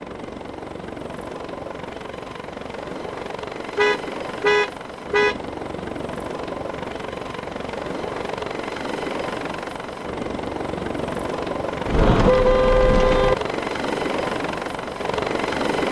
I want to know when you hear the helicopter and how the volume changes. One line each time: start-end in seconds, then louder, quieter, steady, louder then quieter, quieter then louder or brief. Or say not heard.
0.0-15.8 louder.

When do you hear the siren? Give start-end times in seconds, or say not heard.
not heard.